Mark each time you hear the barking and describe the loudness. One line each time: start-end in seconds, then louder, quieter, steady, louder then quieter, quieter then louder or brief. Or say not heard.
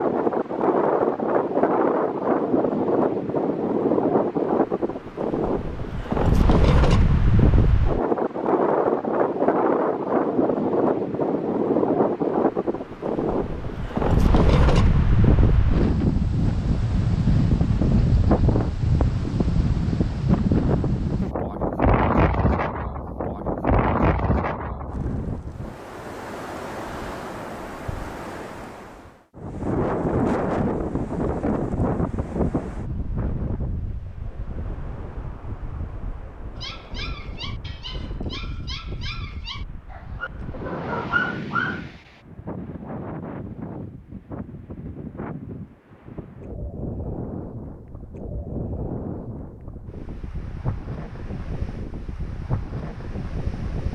36.5-42.2 louder.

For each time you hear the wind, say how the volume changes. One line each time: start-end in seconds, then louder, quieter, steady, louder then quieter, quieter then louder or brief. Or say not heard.
0.0-53.9 quieter.